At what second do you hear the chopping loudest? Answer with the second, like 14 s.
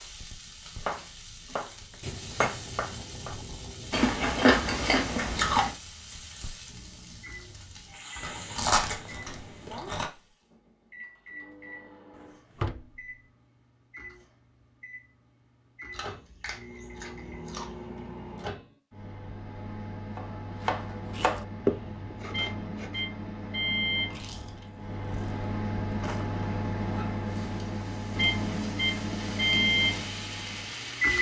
22 s.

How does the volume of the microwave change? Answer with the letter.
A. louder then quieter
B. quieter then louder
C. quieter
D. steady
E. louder
E.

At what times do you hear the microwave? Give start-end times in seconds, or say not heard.
7.2-31.1.